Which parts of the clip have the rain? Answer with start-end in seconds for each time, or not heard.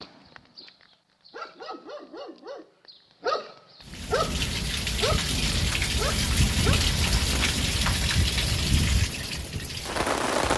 3.9-10.5.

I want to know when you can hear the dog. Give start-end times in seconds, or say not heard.
0.0-7.5.